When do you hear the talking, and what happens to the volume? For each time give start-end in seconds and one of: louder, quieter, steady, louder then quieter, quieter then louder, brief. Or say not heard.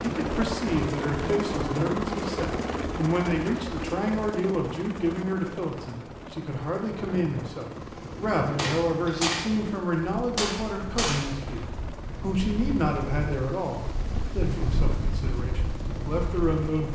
0.0-16.9 steady.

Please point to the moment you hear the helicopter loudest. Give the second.
2 s.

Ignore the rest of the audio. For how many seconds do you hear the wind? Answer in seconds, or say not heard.
10 s.